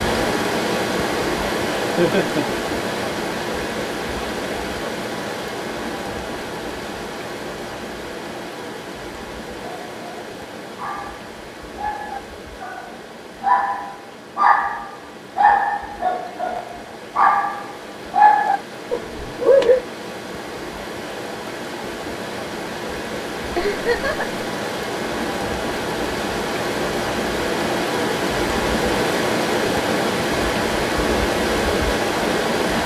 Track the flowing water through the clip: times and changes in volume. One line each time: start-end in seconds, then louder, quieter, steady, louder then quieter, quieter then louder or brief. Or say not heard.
0.0-32.8 quieter then louder.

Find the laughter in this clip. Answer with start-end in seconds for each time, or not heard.
1.9-2.5, 23.6-24.2.